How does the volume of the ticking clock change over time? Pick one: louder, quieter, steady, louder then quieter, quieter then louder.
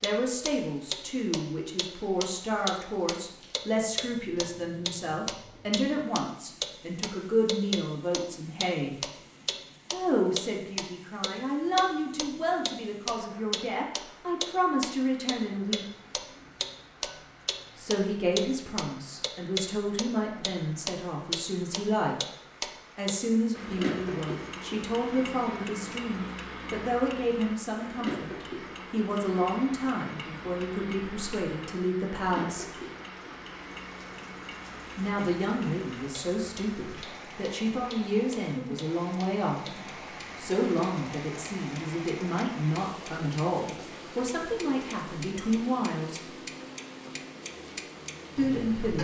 quieter.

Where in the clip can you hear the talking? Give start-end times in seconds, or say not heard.
0.0-8.9, 9.9-15.8, 17.8-22.1, 22.9-32.6, 35.0-46.3, 48.4-48.9.